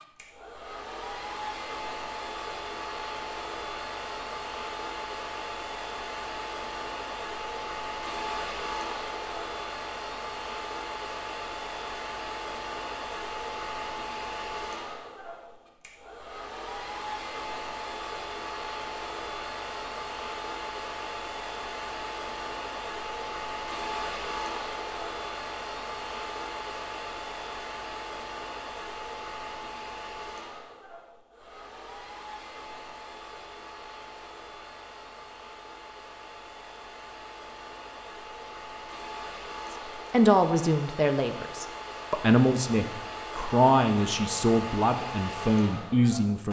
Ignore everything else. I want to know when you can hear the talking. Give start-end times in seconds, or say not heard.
40.1-46.4.